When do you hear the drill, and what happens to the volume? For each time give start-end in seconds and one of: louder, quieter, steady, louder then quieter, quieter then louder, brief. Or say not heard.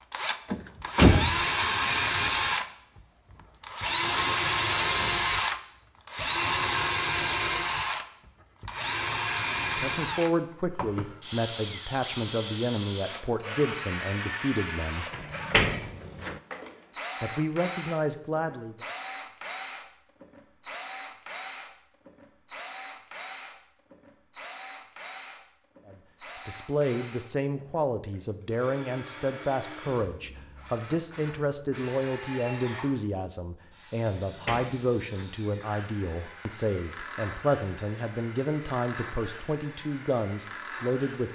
0.1-2.6 brief
3.6-41.3 quieter.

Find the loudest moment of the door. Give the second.
1 s.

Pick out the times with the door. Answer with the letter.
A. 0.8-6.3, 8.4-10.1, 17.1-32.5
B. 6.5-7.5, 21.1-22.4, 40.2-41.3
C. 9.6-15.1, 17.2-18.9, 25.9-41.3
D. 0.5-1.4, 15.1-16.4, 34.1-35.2
D.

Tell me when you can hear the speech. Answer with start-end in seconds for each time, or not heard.
9.6-15.1, 17.2-18.9, 25.9-41.3.